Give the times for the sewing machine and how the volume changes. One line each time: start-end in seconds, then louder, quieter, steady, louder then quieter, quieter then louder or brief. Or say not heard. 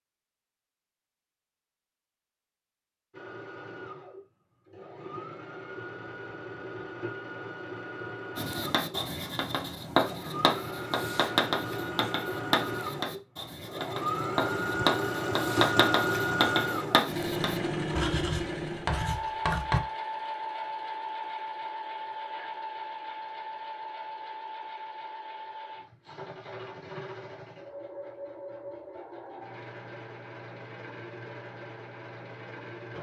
3.1-32.9 louder then quieter.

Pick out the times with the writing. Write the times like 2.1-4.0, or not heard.
8.3-19.8.